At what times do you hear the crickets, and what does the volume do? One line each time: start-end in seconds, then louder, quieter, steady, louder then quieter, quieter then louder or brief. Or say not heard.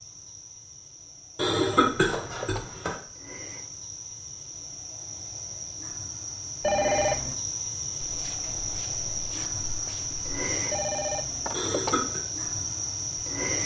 0.0-13.6 louder.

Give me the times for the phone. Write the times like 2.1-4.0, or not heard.
1.4-2.7, 6.6-7.3, 10.7-12.1.